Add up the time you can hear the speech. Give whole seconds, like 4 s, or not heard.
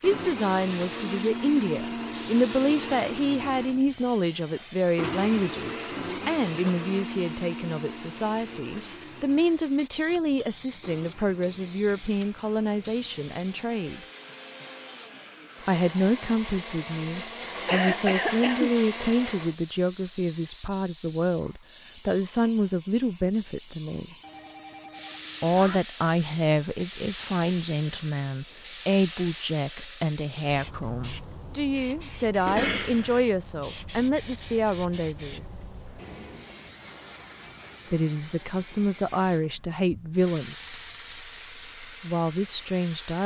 37 s.